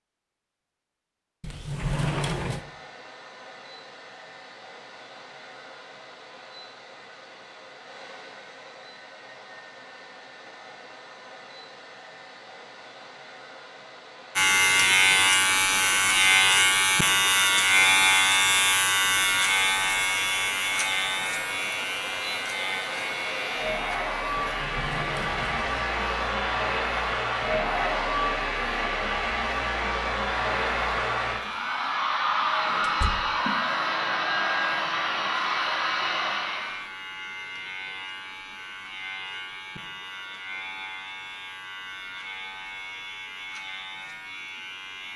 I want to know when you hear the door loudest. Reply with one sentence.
The loudest moment of the door is at 2 seconds.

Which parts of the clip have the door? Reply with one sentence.
The door can be heard from 1.4 to 2.6 s, from 24.4 to 25.9 s and from 32.8 to 33.4 s.